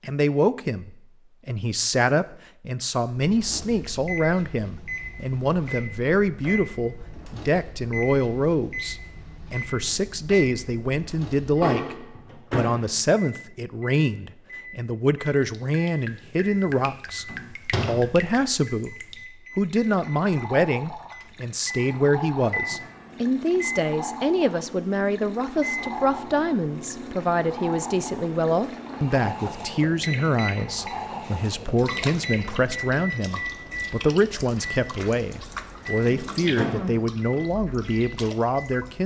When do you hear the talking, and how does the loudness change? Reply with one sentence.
The talking can be heard from 0.0 to 39.0 s, at a steady volume.